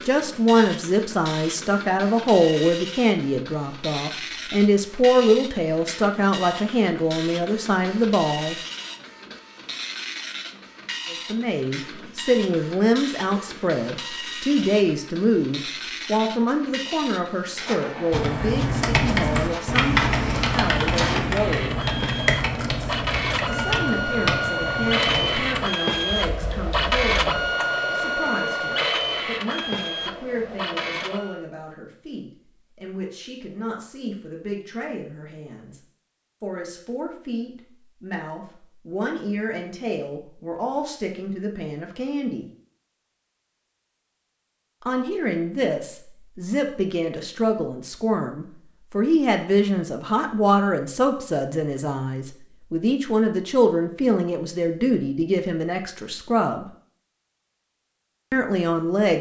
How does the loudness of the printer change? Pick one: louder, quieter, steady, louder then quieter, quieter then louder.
louder.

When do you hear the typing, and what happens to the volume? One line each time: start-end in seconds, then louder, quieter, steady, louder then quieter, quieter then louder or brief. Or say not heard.
18.1-27.5 quieter.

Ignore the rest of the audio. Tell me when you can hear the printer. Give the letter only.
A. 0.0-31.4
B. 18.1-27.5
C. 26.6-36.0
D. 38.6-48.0
A.